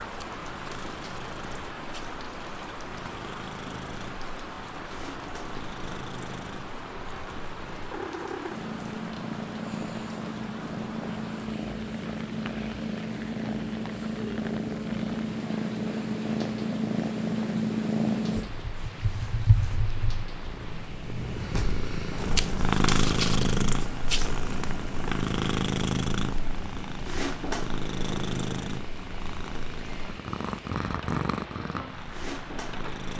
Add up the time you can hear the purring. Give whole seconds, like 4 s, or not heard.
33 s.